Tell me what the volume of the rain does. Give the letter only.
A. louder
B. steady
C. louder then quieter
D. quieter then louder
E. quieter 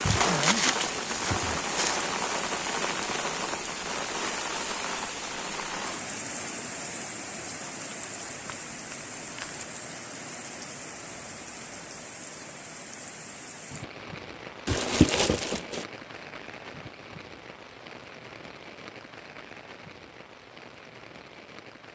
E.